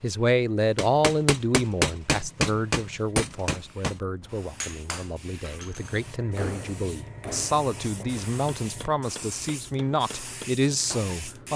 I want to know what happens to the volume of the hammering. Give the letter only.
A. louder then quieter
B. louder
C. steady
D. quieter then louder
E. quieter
E.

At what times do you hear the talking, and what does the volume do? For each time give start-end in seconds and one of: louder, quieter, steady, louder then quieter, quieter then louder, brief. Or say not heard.
0.0-11.5 quieter then louder.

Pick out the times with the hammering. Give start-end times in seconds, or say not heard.
0.8-11.3.